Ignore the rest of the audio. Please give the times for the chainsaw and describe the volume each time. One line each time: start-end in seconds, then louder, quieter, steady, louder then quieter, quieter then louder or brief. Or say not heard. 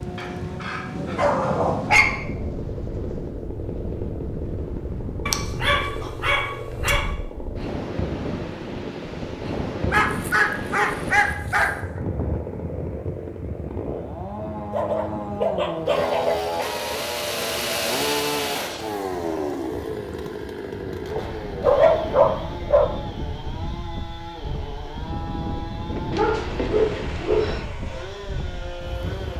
0.0-29.3 louder then quieter.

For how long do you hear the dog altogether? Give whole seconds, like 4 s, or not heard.
11 s.